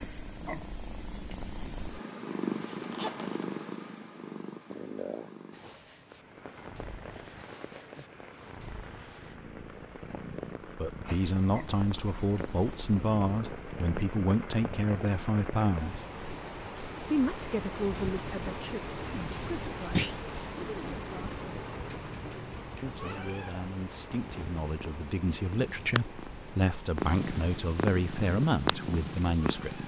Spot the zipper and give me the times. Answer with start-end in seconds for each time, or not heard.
2.5-3.5.